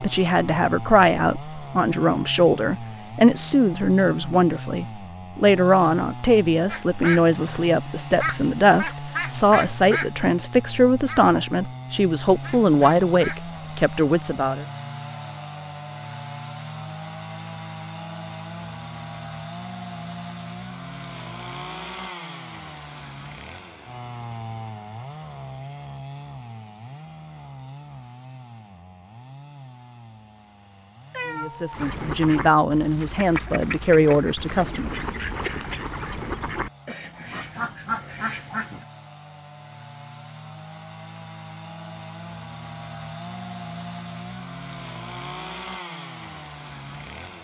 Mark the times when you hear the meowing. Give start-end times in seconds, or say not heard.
31.1-31.8.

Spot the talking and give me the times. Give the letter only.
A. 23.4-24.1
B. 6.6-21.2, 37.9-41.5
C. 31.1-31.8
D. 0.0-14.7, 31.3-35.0
D.